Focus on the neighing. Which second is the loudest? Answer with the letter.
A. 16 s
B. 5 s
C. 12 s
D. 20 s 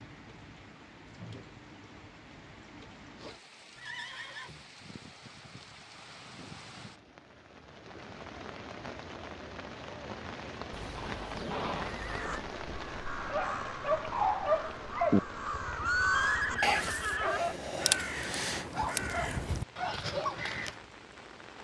A.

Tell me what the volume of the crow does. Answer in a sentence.
The loudness of the crow goes up.